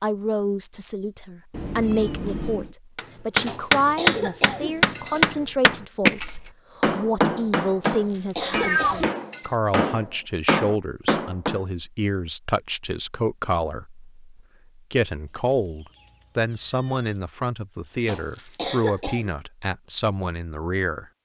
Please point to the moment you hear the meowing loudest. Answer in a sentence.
The volume of the meowing peaks at 9 seconds.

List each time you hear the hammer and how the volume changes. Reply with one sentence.
You can hear the hammer from 3.0 to 11.6 s, getting quieter then louder.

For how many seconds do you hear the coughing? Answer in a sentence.
You can hear the coughing for 5 seconds altogether.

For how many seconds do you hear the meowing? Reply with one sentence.
You can hear the meowing for 4 seconds altogether.